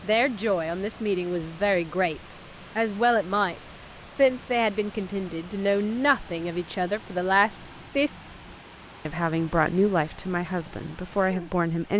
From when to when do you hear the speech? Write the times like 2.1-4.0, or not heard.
0.0-3.5, 4.2-8.1, 9.1-11.9.